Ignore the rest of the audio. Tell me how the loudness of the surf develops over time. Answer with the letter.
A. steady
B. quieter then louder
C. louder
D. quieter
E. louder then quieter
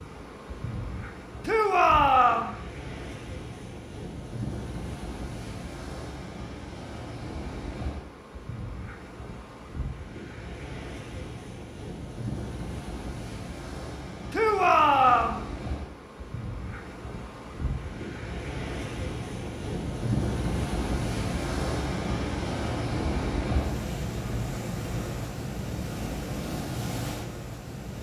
C.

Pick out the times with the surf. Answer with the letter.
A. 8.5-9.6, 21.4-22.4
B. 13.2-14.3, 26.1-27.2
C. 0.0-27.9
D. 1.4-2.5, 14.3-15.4
C.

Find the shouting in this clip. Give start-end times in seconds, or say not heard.
1.4-2.5, 14.3-15.4.